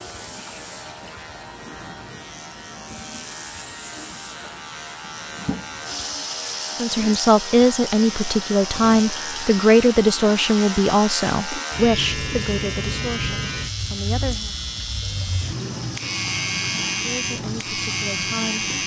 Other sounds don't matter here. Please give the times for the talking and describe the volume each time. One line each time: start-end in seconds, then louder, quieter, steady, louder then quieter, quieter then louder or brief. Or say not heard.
6.8-14.6 quieter
17.0-18.6 brief.